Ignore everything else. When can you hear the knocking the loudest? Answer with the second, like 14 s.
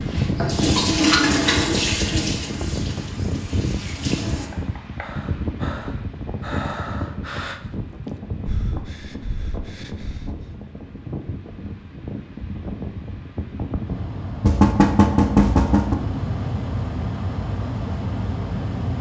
15 s.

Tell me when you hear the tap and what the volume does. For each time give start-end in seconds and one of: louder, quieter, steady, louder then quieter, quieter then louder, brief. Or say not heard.
0.0-4.5 quieter.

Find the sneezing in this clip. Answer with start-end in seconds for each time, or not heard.
not heard.